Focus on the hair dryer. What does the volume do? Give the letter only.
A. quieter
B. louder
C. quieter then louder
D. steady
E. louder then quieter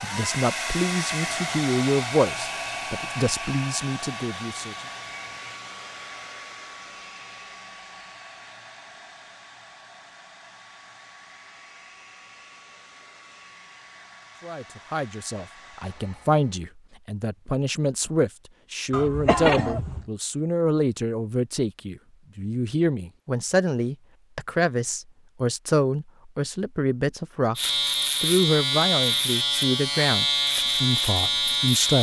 A.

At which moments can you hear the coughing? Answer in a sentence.
You can hear the coughing from 18.9 to 20.1 s.